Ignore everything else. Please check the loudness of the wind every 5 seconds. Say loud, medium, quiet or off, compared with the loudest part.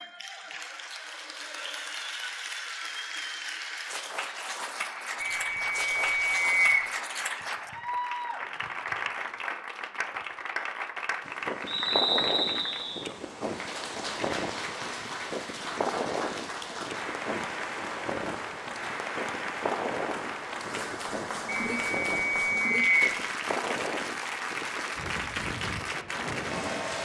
off, off, loud, loud, loud, loud.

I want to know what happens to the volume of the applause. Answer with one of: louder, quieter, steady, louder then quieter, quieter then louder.
steady.